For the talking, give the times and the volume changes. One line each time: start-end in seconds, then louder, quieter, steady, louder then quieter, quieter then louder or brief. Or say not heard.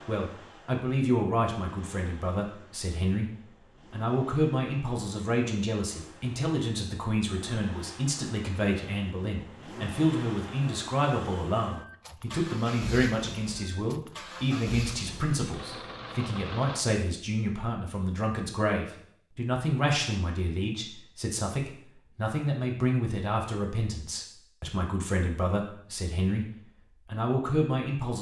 0.0-28.1 steady.